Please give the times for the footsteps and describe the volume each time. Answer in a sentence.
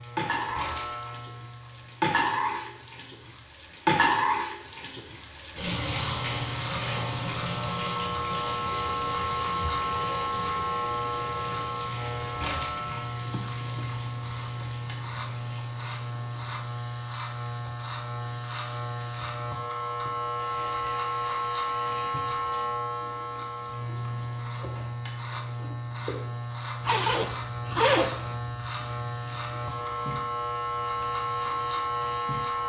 The footsteps can't be heard in this clip.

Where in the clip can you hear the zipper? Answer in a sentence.
The zipper can be heard from 13.2 to 14.0 s and from 26.8 to 28.4 s.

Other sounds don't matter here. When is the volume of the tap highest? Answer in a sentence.
The loudest moment of the tap is at 4 seconds.